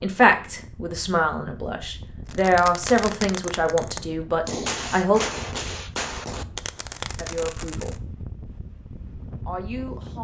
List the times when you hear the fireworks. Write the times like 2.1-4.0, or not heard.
2.2-8.0.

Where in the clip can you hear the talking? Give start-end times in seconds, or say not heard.
0.0-5.2, 7.2-8.0, 9.4-10.2.